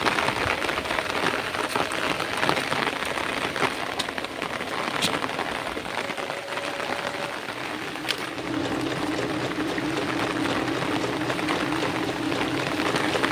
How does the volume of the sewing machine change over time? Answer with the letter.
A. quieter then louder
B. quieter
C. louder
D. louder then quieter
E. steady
C.